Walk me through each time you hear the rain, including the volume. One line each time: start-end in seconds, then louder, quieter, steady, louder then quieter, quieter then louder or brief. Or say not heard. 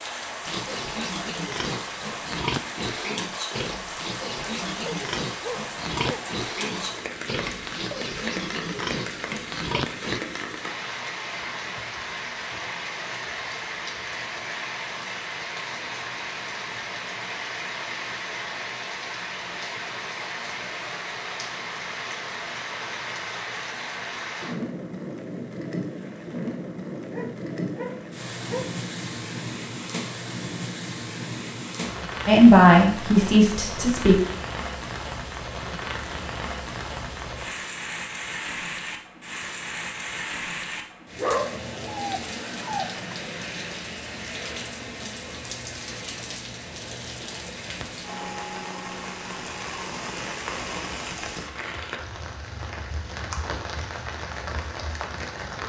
0.0-55.6 steady.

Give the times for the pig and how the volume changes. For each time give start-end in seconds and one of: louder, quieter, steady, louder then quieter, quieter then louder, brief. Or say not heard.
0.5-10.2 steady.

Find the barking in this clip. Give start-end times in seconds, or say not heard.
4.8-6.3, 27.1-28.7, 41.1-43.1.